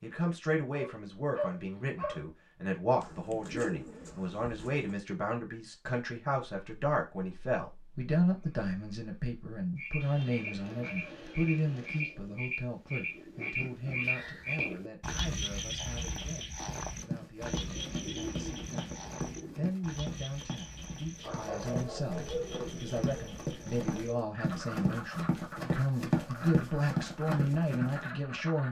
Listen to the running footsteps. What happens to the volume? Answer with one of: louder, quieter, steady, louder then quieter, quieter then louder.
louder.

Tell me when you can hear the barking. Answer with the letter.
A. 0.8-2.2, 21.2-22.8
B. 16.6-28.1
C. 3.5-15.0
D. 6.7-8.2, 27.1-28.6
A.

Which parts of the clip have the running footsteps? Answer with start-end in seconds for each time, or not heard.
16.6-28.1.